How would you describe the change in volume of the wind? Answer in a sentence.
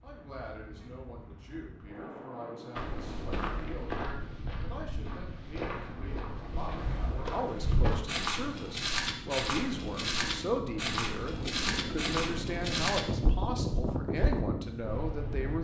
The volume of the wind goes up.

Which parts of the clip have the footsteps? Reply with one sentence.
The footsteps can be heard from 2.8 to 14.4 s.